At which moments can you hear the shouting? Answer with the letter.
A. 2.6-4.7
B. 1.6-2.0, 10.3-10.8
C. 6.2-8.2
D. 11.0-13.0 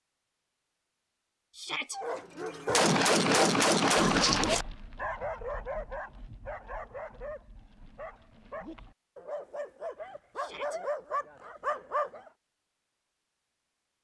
B.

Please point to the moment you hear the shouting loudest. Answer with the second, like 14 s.
2 s.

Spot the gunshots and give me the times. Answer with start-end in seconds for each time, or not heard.
2.6-4.7.